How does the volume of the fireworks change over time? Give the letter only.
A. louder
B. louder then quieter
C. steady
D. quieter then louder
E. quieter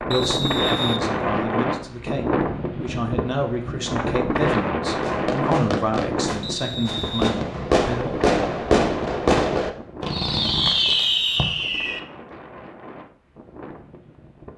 A.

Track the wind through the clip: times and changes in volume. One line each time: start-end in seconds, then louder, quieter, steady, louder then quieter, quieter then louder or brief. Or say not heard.
0.0-14.5 quieter.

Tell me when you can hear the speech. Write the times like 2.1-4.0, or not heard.
0.0-8.2.